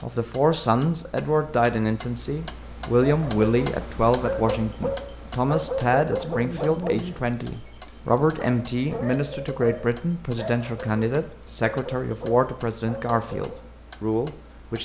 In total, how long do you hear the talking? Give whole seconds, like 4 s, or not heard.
15 s.